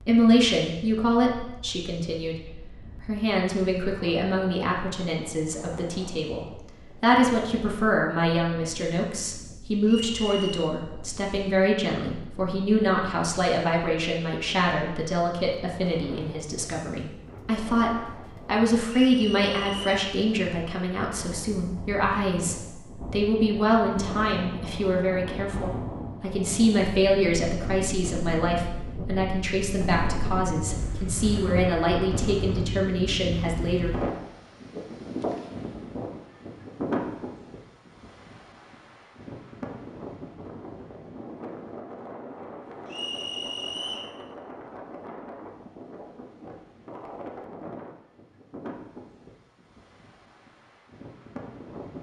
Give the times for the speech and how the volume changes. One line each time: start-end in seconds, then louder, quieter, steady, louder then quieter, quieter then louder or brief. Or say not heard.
0.0-33.9 steady.